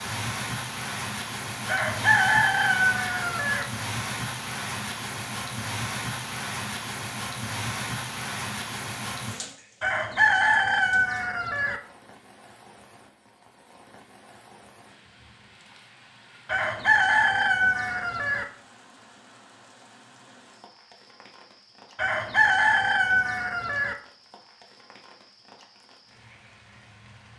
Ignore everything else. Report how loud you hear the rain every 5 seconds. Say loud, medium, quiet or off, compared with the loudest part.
loud, loud, quiet, quiet, quiet, quiet.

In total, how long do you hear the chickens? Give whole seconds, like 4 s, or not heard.
8 s.